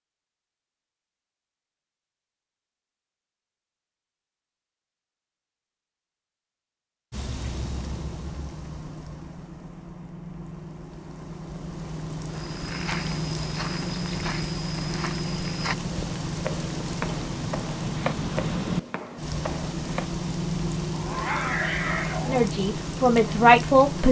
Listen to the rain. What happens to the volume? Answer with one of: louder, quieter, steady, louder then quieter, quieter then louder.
louder.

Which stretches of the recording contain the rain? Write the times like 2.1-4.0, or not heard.
7.1-24.0.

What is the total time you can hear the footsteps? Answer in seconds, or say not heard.
8 s.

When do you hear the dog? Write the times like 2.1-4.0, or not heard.
20.9-22.4.